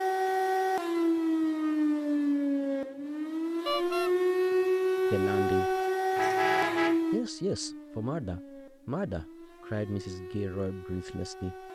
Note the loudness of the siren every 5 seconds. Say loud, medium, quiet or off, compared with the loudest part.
loud, loud, quiet.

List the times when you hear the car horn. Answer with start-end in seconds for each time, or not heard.
3.6-4.1, 6.2-7.0.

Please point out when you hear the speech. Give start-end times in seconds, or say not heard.
5.1-5.8, 7.1-11.7.